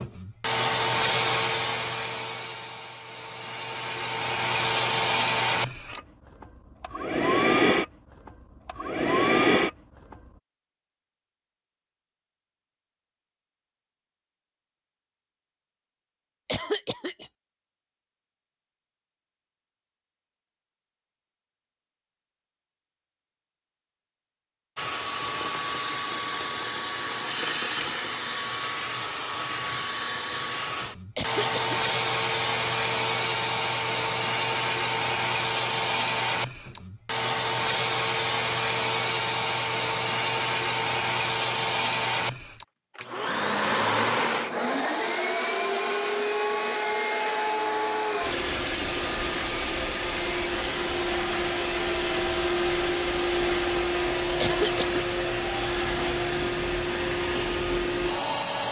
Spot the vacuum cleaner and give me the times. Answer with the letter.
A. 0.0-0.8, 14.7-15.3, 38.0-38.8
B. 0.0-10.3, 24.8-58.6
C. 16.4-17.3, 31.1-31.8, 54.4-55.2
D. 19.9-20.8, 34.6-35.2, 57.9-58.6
B.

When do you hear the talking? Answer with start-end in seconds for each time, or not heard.
not heard.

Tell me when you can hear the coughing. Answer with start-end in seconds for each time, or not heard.
16.4-17.3, 31.1-31.8, 54.4-55.2.